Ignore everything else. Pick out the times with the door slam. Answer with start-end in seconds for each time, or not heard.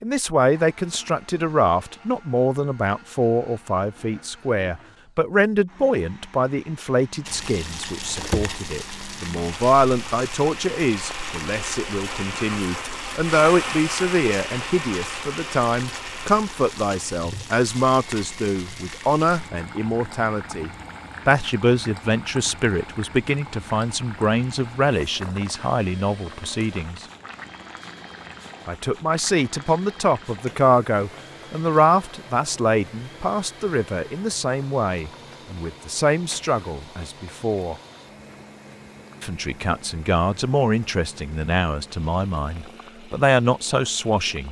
8.2-8.6.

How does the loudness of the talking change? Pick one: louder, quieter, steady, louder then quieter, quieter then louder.
steady.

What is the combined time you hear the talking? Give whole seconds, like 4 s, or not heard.
41 s.